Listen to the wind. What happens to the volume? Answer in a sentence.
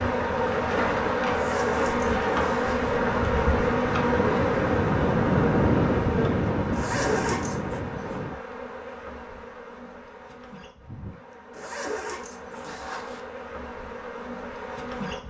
The loudness of the wind goes up, then down.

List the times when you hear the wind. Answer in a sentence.
You can hear the wind from 0.0 to 8.4 s.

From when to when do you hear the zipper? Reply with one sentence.
The zipper can be heard from 1.3 to 3.0 s, from 6.7 to 7.8 s and from 11.5 to 13.2 s.